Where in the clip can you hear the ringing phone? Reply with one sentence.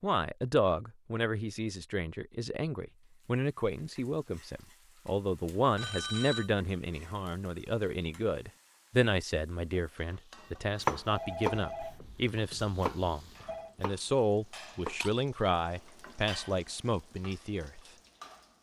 The ringing phone can be heard from 5.8 to 6.5 s and from 11.1 to 13.8 s.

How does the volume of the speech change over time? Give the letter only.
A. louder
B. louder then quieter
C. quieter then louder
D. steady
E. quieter
D.